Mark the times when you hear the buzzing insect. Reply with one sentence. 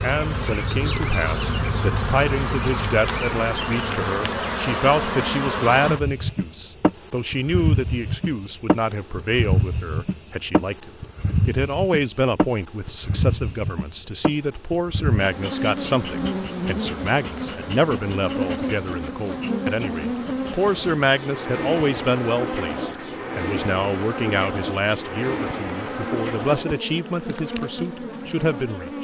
The buzzing insect can be heard from 0.0 to 28.9 s.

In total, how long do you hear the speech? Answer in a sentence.
The speech can be heard for 29 seconds in total.